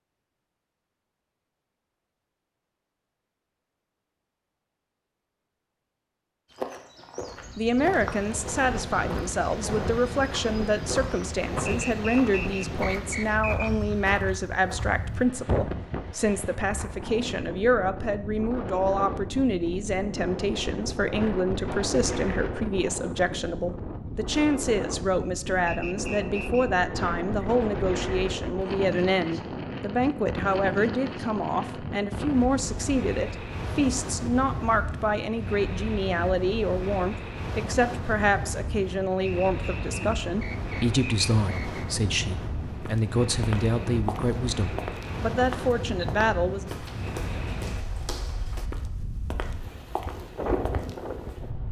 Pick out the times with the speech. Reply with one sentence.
You can hear the speech from 7.5 to 46.7 s.